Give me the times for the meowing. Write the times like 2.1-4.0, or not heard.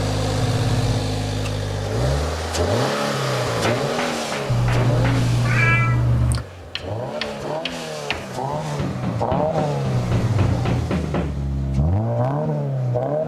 0.3-1.1, 4.5-6.5, 10.2-11.0.